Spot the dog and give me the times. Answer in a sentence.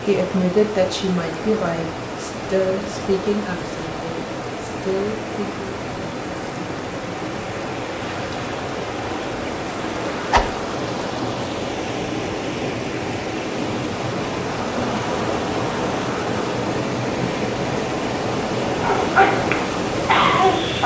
The dog can be heard from 18.8 to 20.8 s.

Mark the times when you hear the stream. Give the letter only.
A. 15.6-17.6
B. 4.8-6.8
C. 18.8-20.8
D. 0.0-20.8
D.